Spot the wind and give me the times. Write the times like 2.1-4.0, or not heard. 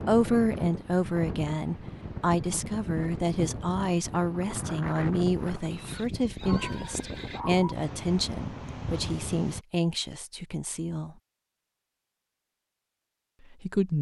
0.0-9.7.